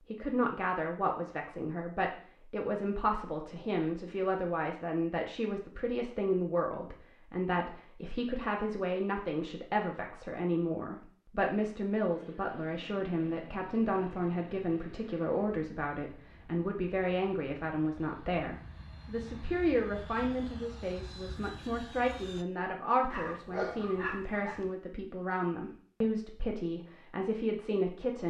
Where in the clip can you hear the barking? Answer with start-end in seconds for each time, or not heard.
23.1-24.7.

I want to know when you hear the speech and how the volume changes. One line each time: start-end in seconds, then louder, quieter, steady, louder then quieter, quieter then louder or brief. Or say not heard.
0.1-28.2 steady.